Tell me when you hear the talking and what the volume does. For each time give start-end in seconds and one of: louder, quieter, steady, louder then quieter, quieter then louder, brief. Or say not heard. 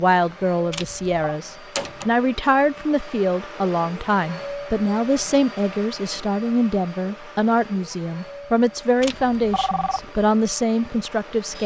0.0-11.6 steady.